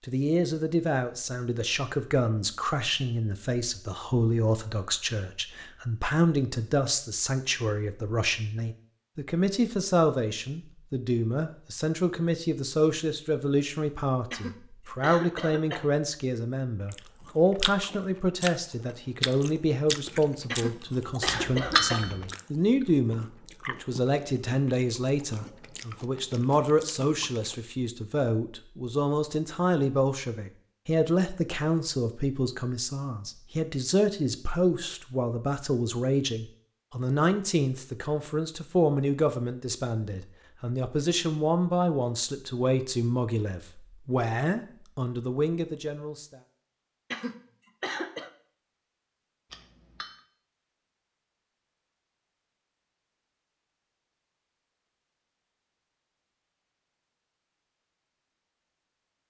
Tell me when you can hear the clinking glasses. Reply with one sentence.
The clinking glasses can be heard from 21.2 to 22.4 s and from 49.5 to 50.2 s.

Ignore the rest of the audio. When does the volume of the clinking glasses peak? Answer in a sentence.
The loudest moment of the clinking glasses is at 22 seconds.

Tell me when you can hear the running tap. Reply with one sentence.
The running tap can't be heard in this clip.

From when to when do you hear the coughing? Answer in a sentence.
You can hear the coughing from 14.3 to 15.9 s, from 20.5 to 22.1 s and from 47.1 to 48.3 s.